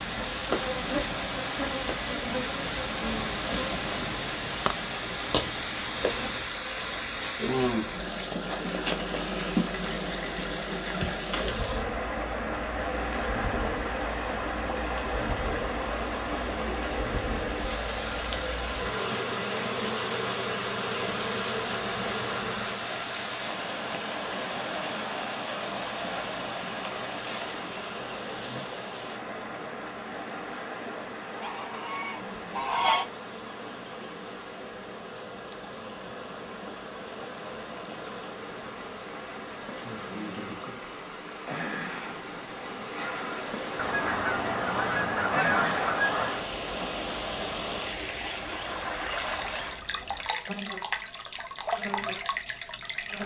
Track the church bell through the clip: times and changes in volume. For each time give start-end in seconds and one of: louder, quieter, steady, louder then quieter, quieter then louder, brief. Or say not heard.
not heard.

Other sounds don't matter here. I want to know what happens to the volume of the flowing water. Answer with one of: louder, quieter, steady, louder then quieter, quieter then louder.
quieter then louder.